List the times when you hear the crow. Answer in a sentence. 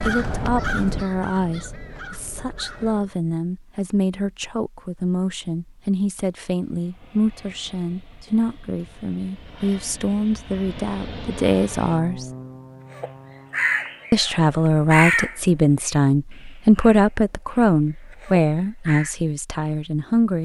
The crow can be heard from 0.0 to 3.1 s and from 12.9 to 19.1 s.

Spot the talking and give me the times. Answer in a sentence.
You can hear the talking from 0.1 to 12.2 s and from 14.1 to 20.4 s.